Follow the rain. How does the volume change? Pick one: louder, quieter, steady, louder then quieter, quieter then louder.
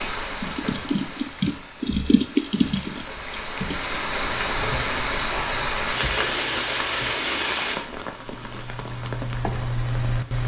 louder then quieter.